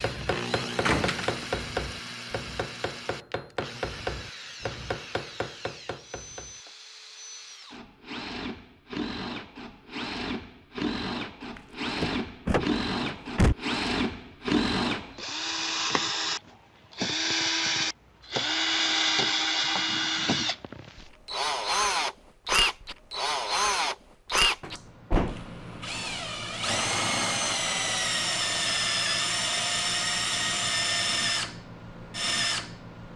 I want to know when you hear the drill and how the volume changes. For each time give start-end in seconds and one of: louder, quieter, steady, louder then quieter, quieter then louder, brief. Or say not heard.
0.0-33.1 louder.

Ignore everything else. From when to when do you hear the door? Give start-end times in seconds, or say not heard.
0.8-1.4, 11.6-13.6, 24.6-25.6.